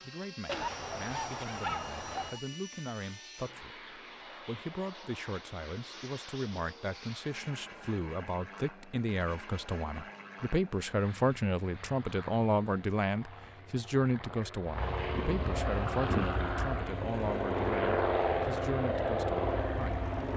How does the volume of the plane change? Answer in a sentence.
The loudness of the plane goes up.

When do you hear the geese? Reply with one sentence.
You can hear the geese from 0.5 to 2.4 s.